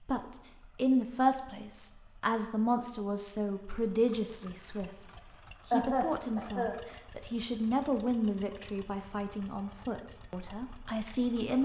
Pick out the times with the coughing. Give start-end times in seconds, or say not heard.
5.7-6.8.